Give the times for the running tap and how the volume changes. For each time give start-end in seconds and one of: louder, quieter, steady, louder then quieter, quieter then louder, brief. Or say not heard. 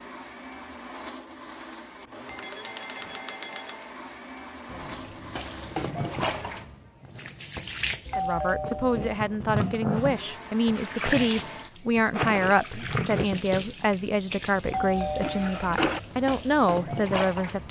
4.7-17.6 steady.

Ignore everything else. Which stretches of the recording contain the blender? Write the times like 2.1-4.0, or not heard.
0.0-6.7, 9.9-12.2.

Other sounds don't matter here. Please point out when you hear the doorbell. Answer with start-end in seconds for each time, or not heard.
2.2-3.9, 8.1-9.0, 14.7-15.6.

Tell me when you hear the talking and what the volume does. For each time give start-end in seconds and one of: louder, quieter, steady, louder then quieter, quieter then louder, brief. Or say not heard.
8.2-17.6 steady.